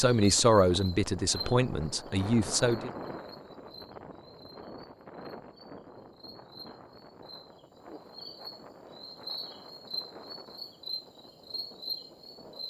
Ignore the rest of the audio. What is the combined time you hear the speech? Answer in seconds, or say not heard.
3 s.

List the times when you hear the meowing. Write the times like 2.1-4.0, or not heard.
not heard.